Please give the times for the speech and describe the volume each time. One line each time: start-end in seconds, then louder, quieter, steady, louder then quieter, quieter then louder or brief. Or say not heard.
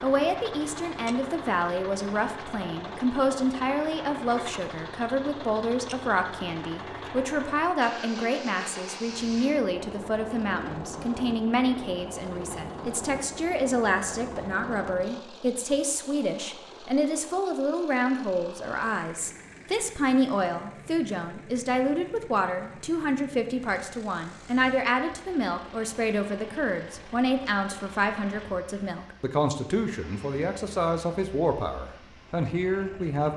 0.0-33.3 steady.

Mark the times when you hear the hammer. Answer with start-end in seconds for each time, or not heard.
not heard.